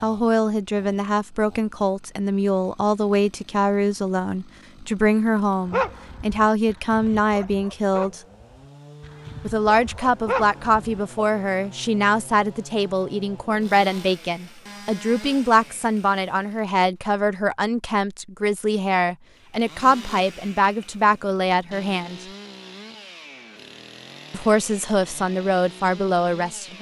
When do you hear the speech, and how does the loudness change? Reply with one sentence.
The speech can be heard from 0.0 to 8.2 s, at a steady volume; from 9.4 to 22.2 s, at a steady volume; and briefly from 24.3 to 26.7 s.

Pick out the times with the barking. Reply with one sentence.
The barking can be heard from 5.7 to 11.2 s.